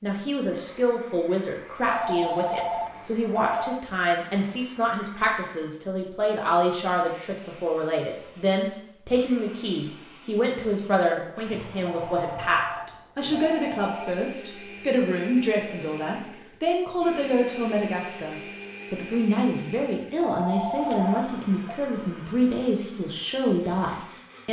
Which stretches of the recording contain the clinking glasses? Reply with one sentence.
The clinking glasses can't be heard in this clip.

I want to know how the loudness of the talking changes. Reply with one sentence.
The volume of the talking stays about the same.